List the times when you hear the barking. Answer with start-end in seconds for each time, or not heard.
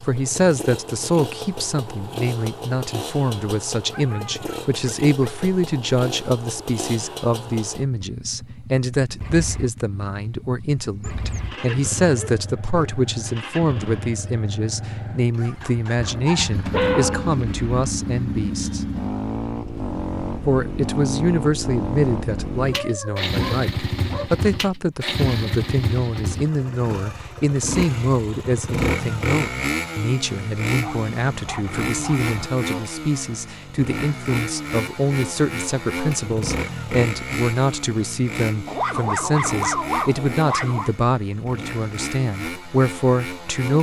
3.9-5.5, 11.0-13.0, 15.9-17.9, 22.7-24.3, 30.8-32.5, 38.6-40.9.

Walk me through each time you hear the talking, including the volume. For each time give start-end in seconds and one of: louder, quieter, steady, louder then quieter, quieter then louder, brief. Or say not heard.
0.0-18.9 steady
20.4-43.7 steady.